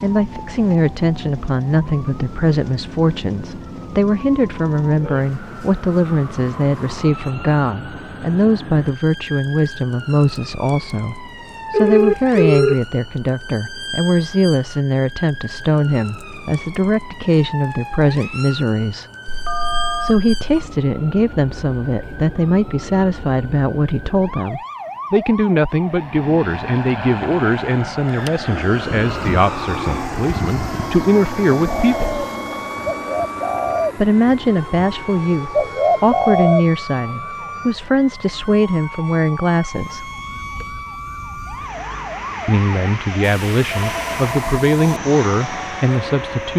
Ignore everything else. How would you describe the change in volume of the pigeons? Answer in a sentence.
The volume of the pigeons goes up.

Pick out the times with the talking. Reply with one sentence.
The talking can be heard from 0.0 to 19.1 s, from 20.0 to 32.2 s, from 34.0 to 40.0 s and from 42.5 to 46.5 s.